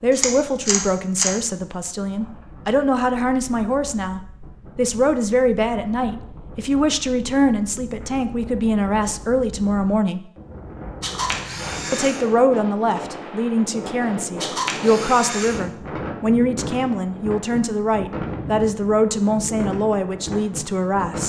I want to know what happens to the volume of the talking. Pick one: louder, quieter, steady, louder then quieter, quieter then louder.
steady.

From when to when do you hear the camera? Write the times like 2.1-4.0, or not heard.
0.1-1.4, 11.0-12.2, 14.4-15.6.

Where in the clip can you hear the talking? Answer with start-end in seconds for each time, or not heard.
0.0-10.2, 11.9-21.2.